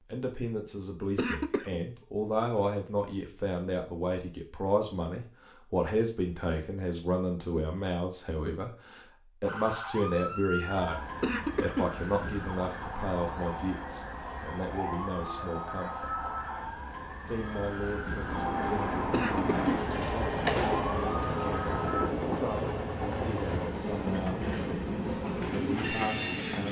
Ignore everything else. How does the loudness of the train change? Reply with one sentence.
The loudness of the train stays about the same.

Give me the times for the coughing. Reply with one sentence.
You can hear the coughing from 1.1 to 1.8 s, from 11.2 to 11.9 s and from 19.1 to 20.9 s.